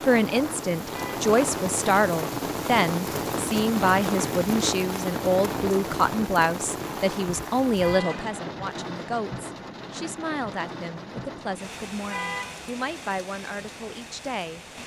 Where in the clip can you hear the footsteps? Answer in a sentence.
You can't hear the footsteps here.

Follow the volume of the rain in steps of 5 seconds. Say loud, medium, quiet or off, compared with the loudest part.
loud, loud, medium.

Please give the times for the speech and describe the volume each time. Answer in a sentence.
The speech can be heard from 0.0 to 14.6 s, getting quieter.